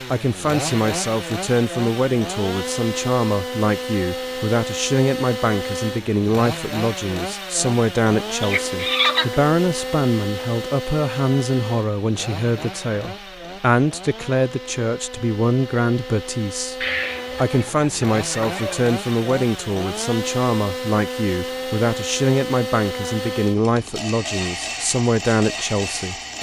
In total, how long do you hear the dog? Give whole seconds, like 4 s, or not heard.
not heard.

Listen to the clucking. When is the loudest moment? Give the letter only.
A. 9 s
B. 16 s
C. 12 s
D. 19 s
A.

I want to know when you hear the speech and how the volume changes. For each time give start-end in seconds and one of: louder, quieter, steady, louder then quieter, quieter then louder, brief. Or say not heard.
0.1-26.1 steady.